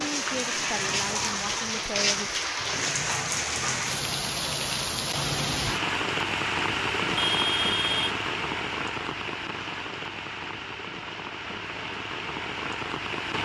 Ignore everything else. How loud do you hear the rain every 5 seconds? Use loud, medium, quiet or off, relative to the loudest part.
loud, loud, medium.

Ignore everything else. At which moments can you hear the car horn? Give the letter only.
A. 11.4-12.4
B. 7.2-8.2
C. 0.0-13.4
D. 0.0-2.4
B.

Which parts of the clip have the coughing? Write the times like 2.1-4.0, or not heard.
not heard.